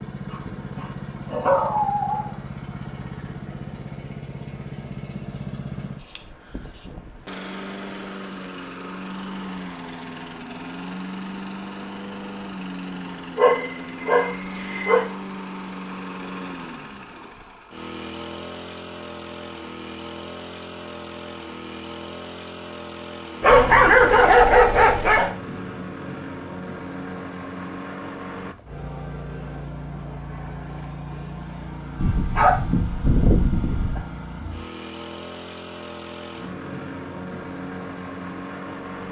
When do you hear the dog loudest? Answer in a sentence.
The loudest moment of the dog is at 24 seconds.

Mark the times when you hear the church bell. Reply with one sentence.
The church bell can't be heard in this clip.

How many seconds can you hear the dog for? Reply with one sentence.
The dog can be heard for 8 seconds in total.